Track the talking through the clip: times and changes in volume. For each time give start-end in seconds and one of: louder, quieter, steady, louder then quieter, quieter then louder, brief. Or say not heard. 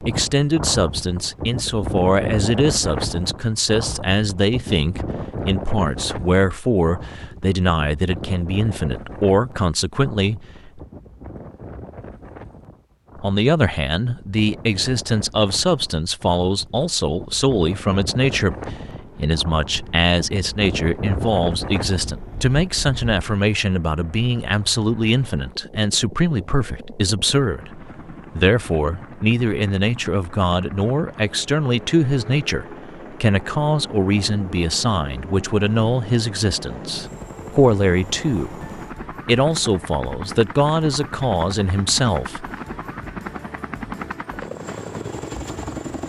0.0-10.8 steady
13.2-42.5 steady.